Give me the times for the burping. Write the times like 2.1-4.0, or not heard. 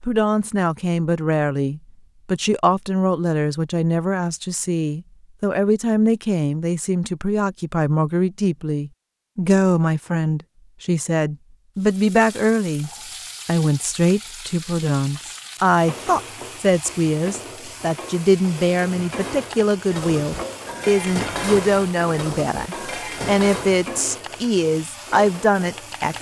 not heard.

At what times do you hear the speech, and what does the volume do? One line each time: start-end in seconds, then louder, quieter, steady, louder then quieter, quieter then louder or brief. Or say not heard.
0.0-26.1 steady.